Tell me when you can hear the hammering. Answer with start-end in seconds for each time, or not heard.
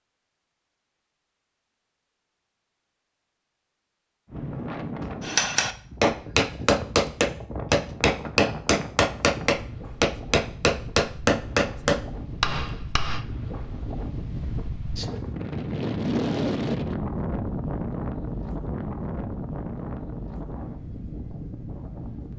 5.2-13.2.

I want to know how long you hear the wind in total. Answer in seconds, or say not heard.
18 s.